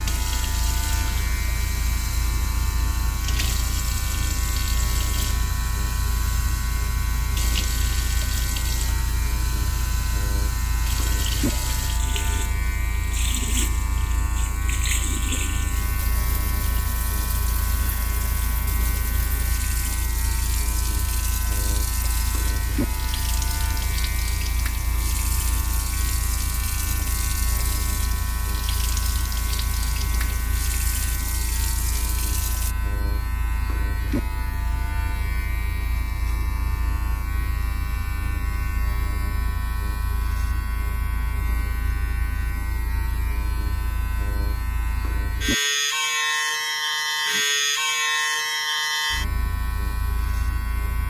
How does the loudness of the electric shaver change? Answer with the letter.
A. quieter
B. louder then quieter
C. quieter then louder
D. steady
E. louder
E.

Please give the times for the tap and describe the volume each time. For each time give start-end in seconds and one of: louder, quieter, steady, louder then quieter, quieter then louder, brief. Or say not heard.
0.0-32.8 steady.